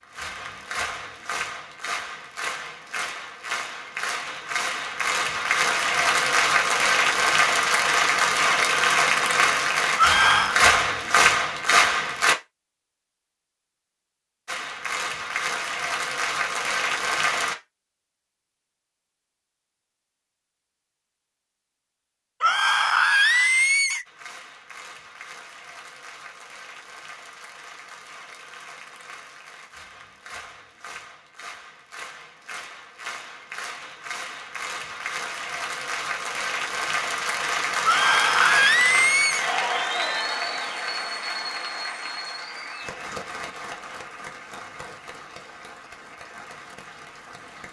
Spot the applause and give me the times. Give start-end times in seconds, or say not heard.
0.0-12.3, 14.4-17.6, 24.1-47.6.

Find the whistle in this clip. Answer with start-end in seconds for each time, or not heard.
not heard.